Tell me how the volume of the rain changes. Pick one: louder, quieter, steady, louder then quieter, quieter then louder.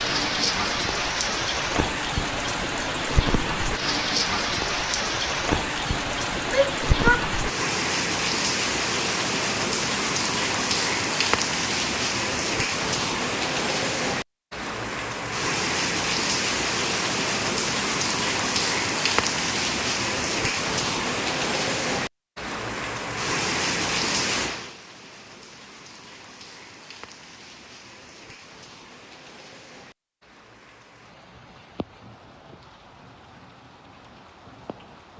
quieter.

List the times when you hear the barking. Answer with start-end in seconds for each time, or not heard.
not heard.